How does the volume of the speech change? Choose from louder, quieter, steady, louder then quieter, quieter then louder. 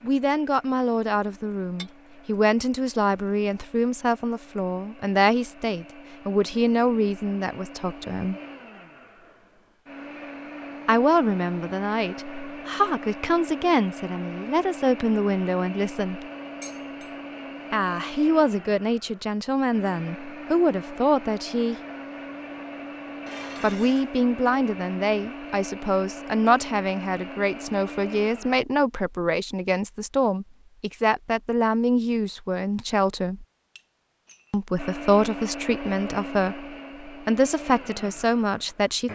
steady.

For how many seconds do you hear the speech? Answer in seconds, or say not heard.
32 s.